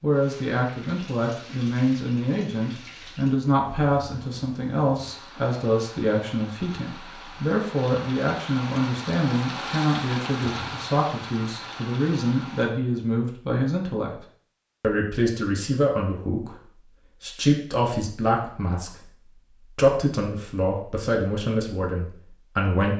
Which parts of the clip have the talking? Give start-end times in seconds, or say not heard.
0.0-14.1, 14.8-22.9.